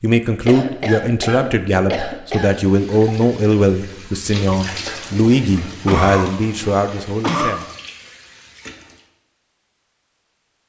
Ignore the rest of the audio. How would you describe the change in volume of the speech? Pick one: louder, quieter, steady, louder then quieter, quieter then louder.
steady.